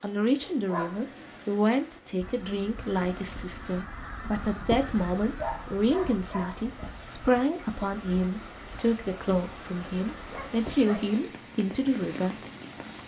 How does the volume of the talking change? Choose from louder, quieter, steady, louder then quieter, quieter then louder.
steady.